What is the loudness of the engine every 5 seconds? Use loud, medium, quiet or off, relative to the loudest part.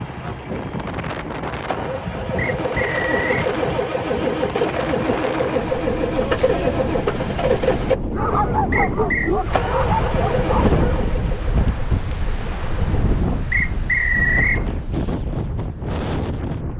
loud, loud, medium, off.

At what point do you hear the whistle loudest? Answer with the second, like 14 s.
14 s.